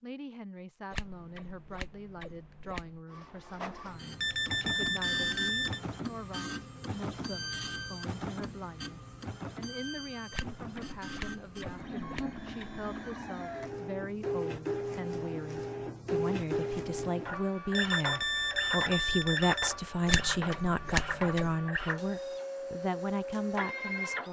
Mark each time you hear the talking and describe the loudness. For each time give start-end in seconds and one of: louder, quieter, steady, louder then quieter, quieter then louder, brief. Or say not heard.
0.0-24.2 louder.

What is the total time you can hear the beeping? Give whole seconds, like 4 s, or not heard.
4 s.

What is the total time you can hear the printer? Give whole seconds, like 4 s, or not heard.
21 s.